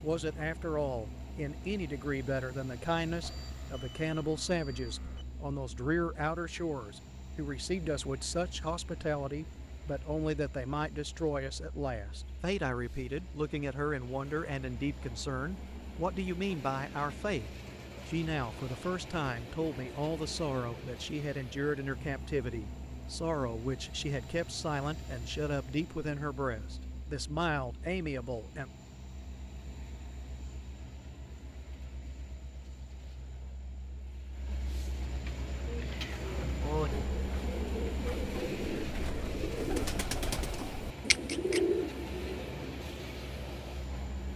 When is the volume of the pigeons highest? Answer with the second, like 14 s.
42 s.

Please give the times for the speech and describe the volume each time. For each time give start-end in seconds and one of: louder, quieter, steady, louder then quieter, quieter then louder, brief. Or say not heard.
0.0-28.7 steady.